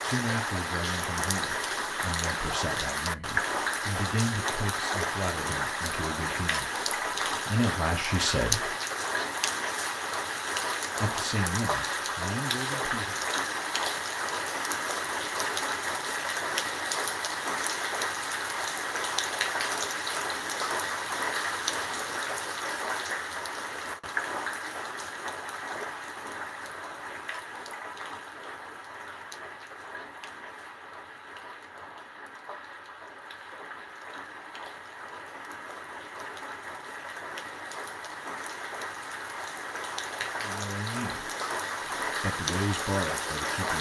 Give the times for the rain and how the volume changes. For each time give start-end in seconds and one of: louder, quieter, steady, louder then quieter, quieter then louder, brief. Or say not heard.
0.0-43.7 quieter then louder.